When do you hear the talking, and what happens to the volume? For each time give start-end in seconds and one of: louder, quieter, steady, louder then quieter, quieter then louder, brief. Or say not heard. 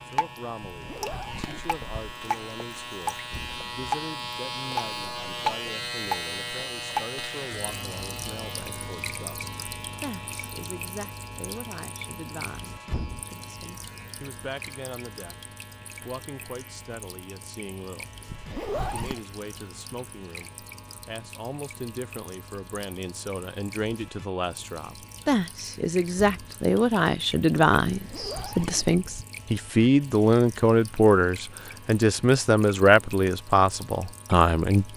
0.1-15.3 steady
16.1-18.1 brief
18.9-34.9 louder.